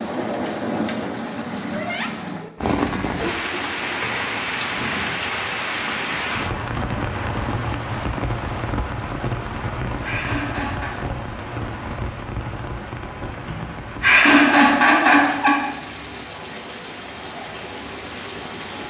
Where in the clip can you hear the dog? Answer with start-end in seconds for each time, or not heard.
not heard.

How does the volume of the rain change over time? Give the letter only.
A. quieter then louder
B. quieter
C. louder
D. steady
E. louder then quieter
B.